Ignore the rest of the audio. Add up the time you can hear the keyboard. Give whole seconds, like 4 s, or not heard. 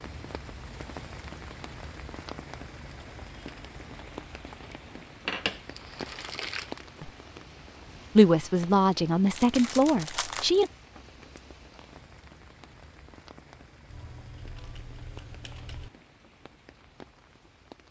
2 s.